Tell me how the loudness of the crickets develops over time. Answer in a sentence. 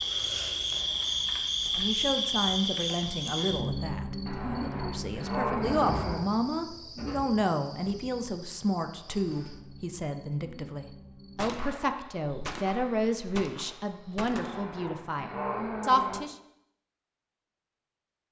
The volume of the crickets goes down.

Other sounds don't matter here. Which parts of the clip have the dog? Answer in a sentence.
You can hear the dog from 4.2 to 6.2 s and from 14.2 to 16.2 s.